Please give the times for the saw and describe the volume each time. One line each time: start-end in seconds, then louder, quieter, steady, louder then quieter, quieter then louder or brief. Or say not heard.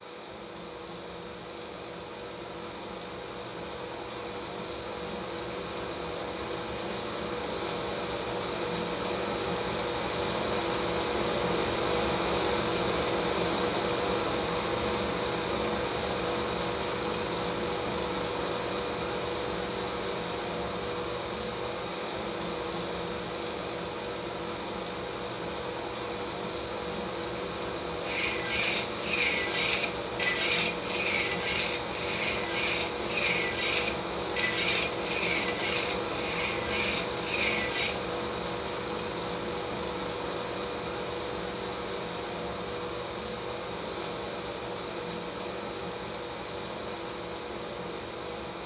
28.1-38.0 steady.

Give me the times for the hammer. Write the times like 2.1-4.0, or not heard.
not heard.